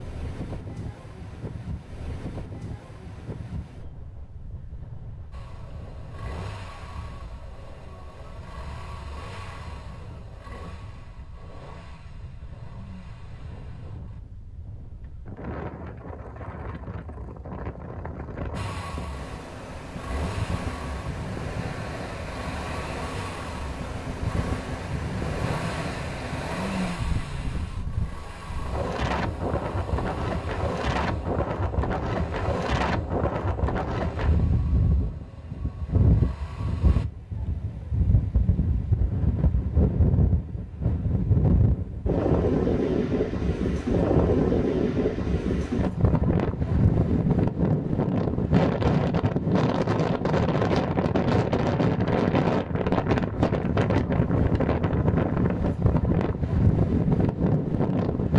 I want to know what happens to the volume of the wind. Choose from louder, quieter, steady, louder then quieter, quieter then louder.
louder.